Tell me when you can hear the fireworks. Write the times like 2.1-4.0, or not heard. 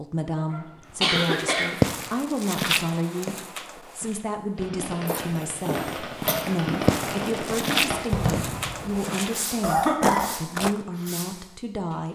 4.5-12.1.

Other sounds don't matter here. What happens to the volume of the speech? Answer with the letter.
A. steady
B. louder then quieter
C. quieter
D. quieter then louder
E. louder
A.